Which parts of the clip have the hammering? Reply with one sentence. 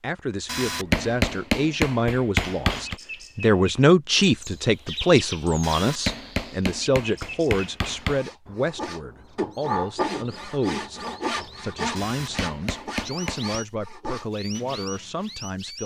The hammering can be heard from 0.5 to 3.0 s, from 5.6 to 8.2 s and from 11.9 to 13.6 s.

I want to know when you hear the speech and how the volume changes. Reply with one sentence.
The speech can be heard from 0.0 to 15.8 s, getting louder then quieter.